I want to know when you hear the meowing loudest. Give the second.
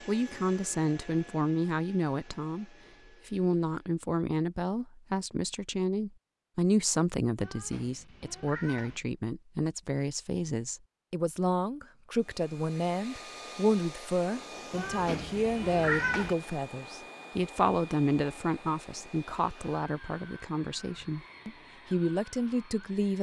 16 s.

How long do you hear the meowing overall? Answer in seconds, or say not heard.
3 s.